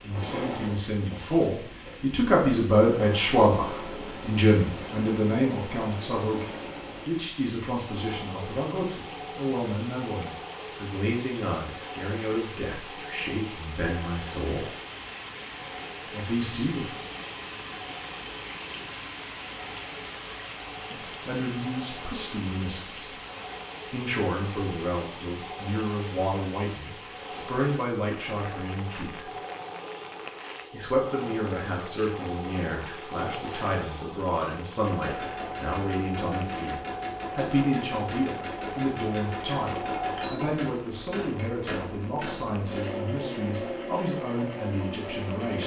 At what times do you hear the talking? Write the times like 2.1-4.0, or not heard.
0.0-14.8, 16.1-17.0, 20.9-23.1, 23.9-29.2, 30.7-45.6.